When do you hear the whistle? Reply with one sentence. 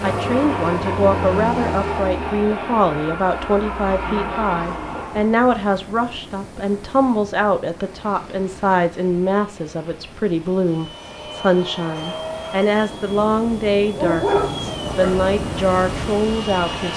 You can't hear the whistle here.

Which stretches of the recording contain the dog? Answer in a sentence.
You can hear the dog from 13.9 to 15.2 s.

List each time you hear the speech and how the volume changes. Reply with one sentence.
The speech can be heard from 0.0 to 16.9 s, at a steady volume.